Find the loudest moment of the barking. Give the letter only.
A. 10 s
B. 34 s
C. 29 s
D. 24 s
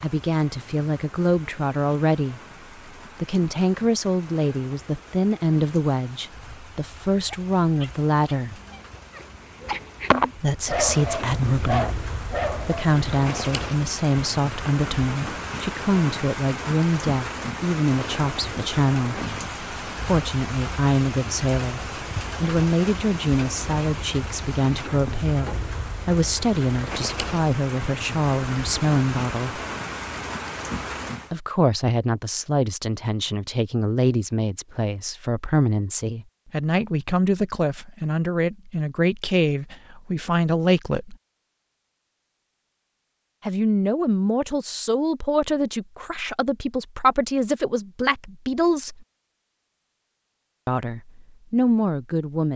A.